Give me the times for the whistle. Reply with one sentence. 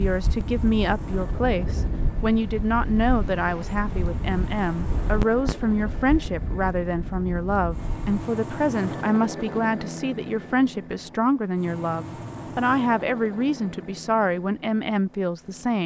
You can't hear the whistle here.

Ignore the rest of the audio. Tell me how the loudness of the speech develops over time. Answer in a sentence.
The loudness of the speech stays about the same.